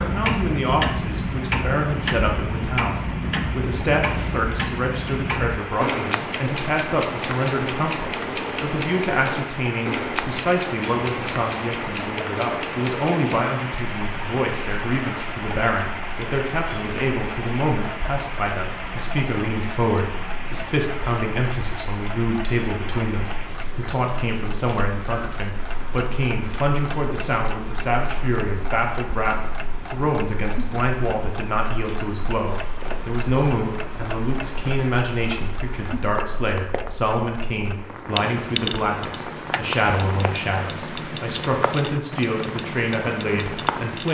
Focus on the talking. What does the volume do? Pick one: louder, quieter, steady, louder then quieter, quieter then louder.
steady.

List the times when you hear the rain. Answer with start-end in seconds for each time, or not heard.
0.0-44.0.